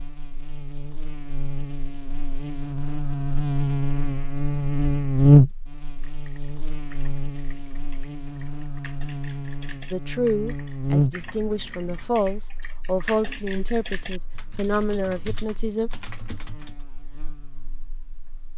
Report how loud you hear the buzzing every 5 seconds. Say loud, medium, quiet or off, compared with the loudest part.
medium, loud, medium, quiet.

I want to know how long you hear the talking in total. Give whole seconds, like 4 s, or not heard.
6 s.